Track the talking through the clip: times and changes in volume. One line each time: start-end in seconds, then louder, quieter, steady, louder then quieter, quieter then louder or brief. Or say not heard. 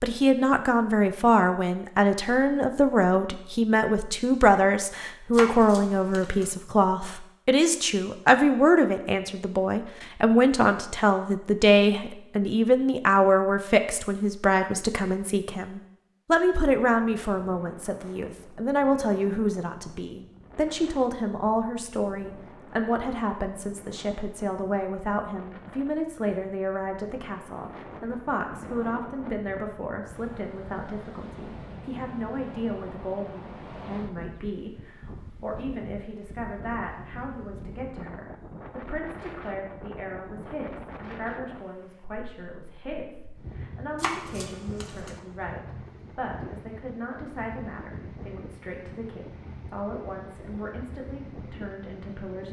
0.0-52.4 quieter.